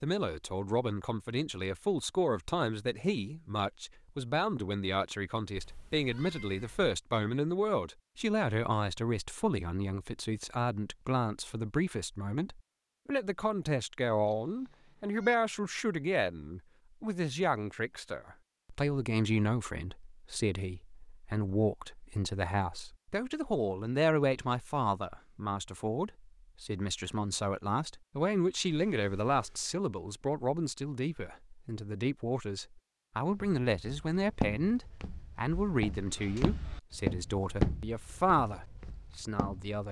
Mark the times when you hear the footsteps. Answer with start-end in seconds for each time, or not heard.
33.3-39.8.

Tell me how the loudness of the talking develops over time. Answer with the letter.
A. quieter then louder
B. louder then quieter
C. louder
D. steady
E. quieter
D.